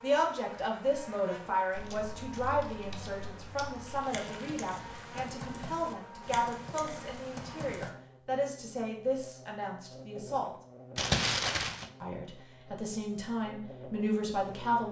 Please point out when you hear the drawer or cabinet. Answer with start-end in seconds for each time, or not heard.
not heard.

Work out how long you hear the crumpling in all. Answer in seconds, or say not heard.
2 s.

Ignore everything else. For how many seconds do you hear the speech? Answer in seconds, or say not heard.
13 s.